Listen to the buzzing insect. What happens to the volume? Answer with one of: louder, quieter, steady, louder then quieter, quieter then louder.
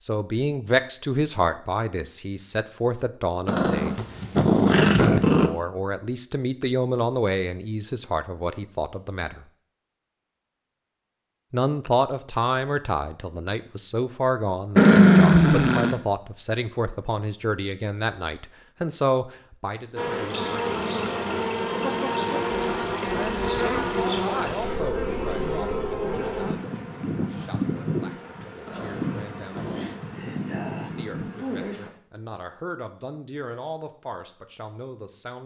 quieter.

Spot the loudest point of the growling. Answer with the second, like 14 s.
15 s.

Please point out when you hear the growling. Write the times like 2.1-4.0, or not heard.
3.5-5.5, 14.8-15.9, 28.6-29.9.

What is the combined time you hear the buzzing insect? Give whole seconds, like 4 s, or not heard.
12 s.